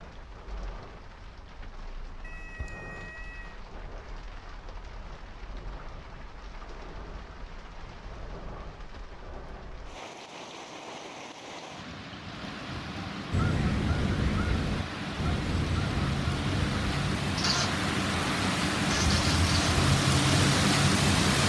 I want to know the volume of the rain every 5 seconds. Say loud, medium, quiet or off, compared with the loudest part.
quiet, quiet, quiet, medium, loud.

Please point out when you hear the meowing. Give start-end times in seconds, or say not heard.
2.2-3.6.